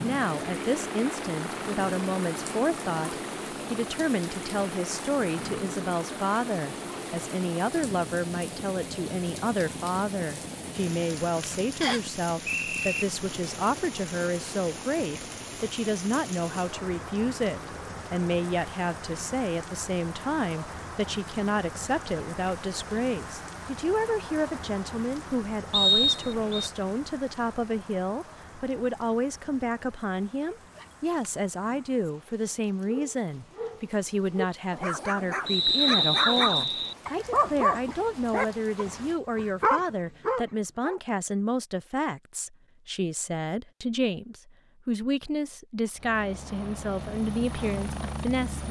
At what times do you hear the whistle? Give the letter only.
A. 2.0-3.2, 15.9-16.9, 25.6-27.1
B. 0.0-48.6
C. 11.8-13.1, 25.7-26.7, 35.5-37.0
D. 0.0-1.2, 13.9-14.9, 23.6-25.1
C.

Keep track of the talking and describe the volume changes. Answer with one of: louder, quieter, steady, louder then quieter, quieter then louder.
steady.